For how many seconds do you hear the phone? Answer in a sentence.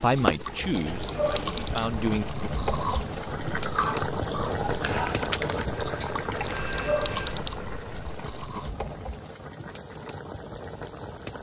The phone can be heard for 2 seconds in total.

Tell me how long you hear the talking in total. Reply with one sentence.
The talking can be heard for 2 seconds in total.